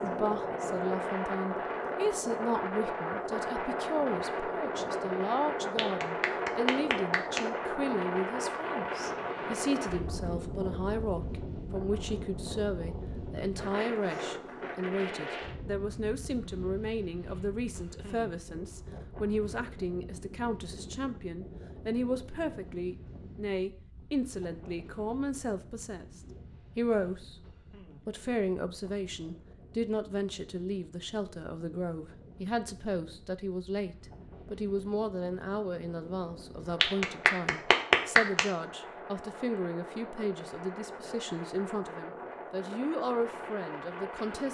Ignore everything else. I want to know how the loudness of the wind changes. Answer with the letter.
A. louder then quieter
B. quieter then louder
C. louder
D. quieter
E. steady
B.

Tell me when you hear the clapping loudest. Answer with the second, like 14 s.
38 s.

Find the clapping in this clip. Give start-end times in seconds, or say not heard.
5.8-7.4, 36.8-38.5.